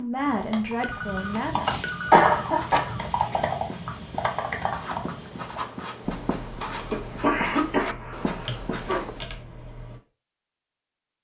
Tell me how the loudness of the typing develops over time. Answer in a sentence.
The loudness of the typing goes down.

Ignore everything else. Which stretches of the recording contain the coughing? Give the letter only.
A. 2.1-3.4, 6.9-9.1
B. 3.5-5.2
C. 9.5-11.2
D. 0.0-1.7
A.